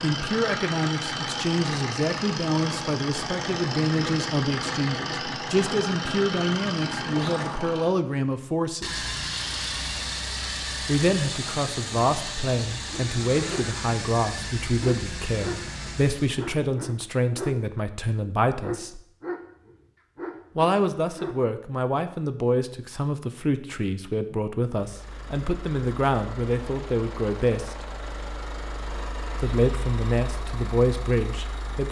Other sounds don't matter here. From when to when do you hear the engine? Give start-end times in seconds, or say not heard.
0.0-16.4, 24.7-31.8.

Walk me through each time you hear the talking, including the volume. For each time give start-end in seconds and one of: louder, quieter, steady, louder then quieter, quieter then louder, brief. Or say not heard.
0.0-9.0 steady
10.8-19.0 steady
20.6-27.9 steady
29.4-31.8 brief.